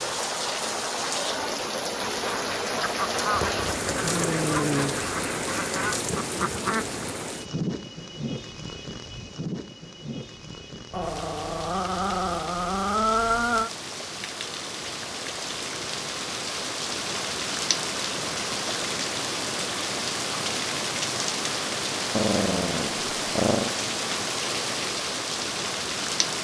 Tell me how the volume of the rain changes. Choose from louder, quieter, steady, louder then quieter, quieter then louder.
quieter then louder.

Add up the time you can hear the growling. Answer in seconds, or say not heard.
6 s.